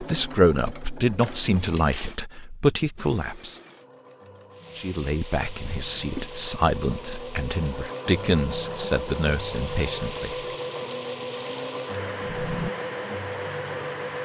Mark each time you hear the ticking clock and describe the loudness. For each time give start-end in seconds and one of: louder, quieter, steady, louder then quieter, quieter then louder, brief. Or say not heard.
not heard.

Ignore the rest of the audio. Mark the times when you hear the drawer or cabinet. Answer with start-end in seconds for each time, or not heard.
1.2-2.2, 5.6-6.3, 12.2-12.7.